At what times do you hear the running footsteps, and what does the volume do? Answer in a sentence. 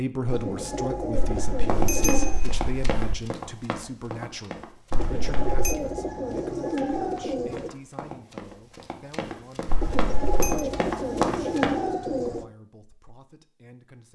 The running footsteps can be heard from 1.6 to 11.8 s, getting quieter then louder.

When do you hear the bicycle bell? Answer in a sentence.
The bicycle bell can be heard from 1.1 to 3.1 s, from 4.9 to 5.8 s and from 9.7 to 10.7 s.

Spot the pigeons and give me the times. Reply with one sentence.
You can hear the pigeons from 0.3 to 2.5 s, from 5.0 to 7.7 s and from 9.8 to 12.4 s.